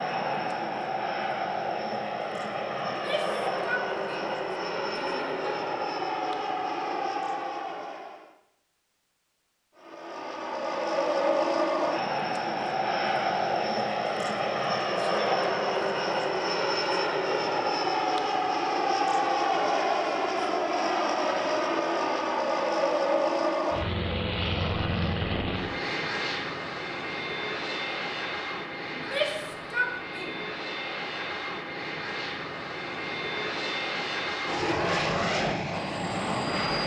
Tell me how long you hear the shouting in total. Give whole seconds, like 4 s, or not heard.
4 s.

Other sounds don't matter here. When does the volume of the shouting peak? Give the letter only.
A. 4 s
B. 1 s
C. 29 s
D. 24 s
C.